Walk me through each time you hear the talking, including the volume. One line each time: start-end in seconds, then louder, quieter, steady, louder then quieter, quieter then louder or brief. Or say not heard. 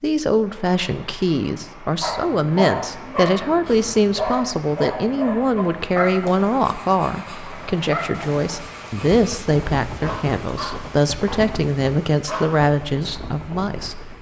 0.0-14.1 steady.